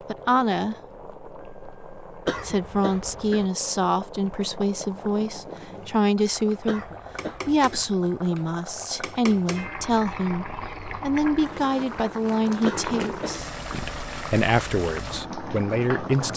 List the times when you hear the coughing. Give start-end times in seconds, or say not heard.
2.2-3.5, 6.7-7.9, 12.7-13.8.